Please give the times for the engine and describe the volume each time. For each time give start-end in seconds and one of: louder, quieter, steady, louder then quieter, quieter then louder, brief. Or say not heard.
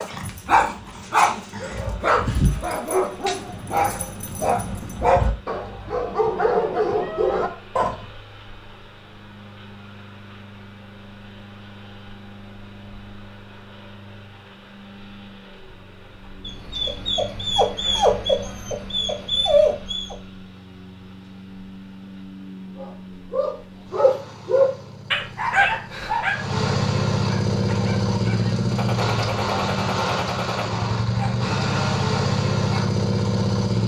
0.2-33.8 louder.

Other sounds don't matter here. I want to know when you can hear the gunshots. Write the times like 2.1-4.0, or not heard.
28.7-30.7.